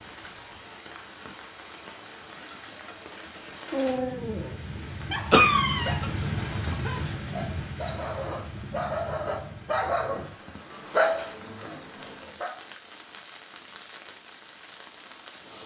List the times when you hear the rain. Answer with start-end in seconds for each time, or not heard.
0.0-15.6.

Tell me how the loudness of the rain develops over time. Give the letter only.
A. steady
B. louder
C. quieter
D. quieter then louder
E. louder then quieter
E.